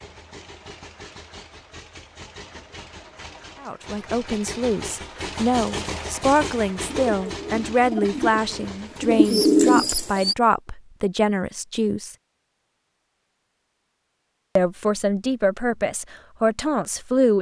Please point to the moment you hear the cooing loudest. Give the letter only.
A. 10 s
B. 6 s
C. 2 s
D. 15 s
A.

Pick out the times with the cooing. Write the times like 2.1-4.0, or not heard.
6.8-10.3.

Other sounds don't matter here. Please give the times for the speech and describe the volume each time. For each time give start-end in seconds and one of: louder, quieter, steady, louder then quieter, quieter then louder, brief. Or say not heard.
3.6-12.2 steady
14.6-17.3 brief.